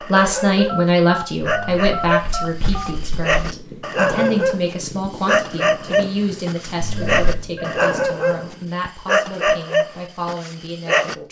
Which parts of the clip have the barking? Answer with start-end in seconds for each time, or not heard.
0.0-11.2.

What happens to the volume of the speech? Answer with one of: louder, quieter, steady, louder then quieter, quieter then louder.
quieter.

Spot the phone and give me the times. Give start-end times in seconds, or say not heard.
0.7-2.9, 7.0-7.8.